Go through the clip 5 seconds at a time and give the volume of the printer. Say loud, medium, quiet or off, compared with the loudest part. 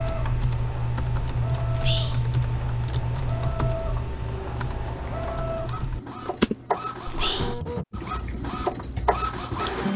medium, loud.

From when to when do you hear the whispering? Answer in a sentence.
You can hear the whispering from 1.7 to 2.2 s and from 7.0 to 7.6 s.